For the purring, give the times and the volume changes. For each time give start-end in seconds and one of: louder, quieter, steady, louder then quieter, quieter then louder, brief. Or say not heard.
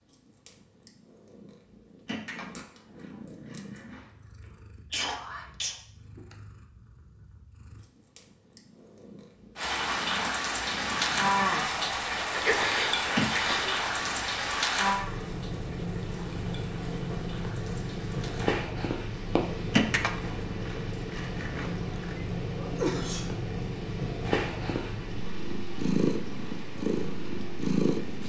0.0-28.2 louder.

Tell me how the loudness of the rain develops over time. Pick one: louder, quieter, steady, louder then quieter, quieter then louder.
quieter.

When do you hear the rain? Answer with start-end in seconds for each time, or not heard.
9.6-28.2.